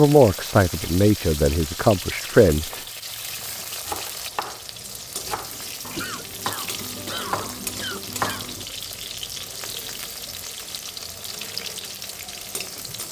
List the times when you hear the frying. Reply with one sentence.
The frying can be heard from 0.0 to 13.0 s.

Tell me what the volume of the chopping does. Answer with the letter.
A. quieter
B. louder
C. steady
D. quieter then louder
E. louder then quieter
D.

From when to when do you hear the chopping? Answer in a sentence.
The chopping can be heard from 3.4 to 8.7 s.